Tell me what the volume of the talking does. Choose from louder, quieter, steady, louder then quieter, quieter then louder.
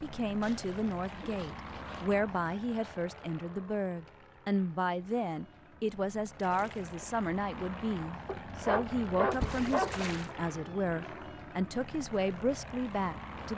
steady.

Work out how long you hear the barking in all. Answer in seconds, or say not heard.
2 s.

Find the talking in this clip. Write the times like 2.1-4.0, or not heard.
0.0-13.5.